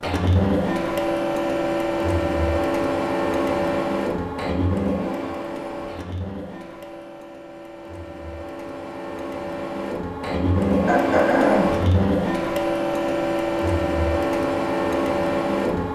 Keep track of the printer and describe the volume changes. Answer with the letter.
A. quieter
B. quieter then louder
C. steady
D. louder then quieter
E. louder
B.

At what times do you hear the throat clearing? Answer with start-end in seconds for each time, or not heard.
10.8-11.8.